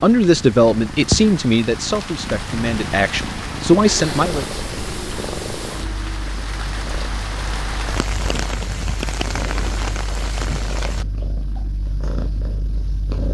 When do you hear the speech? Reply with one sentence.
The speech can be heard from 0.0 to 4.5 s.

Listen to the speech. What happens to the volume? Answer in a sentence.
The loudness of the speech goes down, then up.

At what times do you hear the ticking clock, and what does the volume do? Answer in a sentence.
The ticking clock can't be heard in this clip.